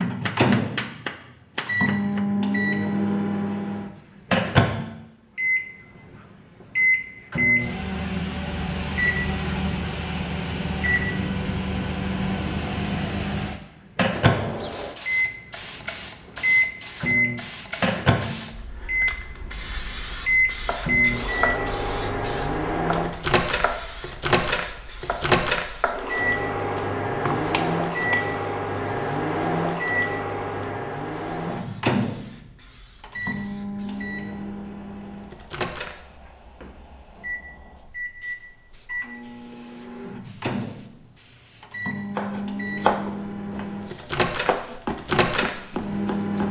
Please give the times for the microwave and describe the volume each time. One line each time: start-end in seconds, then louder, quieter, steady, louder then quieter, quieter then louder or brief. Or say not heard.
0.0-46.4 quieter.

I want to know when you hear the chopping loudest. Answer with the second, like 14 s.
43 s.